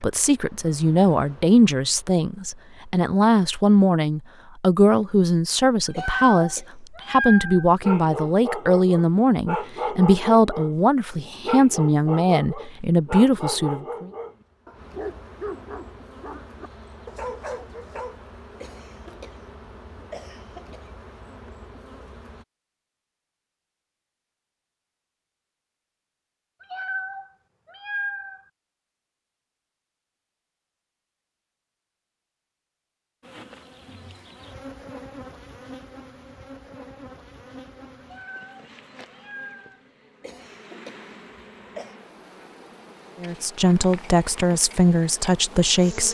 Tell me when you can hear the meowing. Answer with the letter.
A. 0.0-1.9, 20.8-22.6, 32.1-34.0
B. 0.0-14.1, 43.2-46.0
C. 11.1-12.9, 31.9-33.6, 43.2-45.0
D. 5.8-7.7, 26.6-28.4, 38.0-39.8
D.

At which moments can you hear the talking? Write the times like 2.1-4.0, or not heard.
0.0-14.1, 43.2-46.0.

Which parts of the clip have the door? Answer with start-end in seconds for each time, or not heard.
not heard.